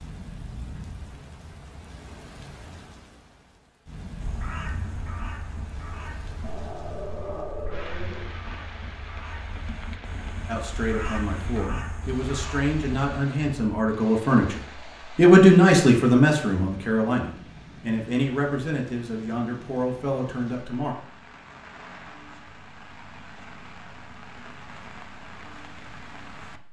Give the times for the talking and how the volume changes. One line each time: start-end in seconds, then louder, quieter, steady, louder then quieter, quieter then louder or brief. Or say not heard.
10.4-20.9 louder then quieter.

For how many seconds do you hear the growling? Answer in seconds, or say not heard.
2 s.